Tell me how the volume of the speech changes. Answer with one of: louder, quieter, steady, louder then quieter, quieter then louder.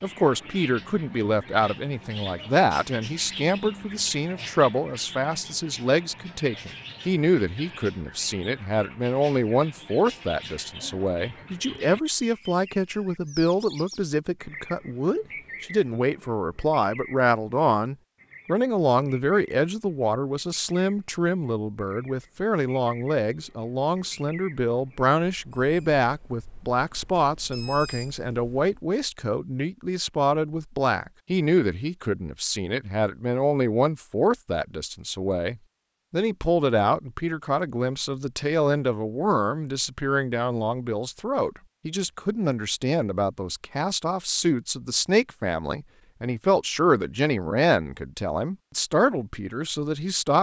steady.